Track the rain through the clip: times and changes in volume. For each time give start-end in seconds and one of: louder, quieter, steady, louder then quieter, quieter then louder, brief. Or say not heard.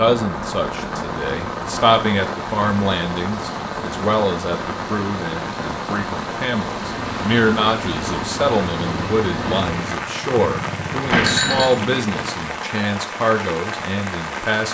0.0-14.6 steady.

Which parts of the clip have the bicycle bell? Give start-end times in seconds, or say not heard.
11.1-11.7.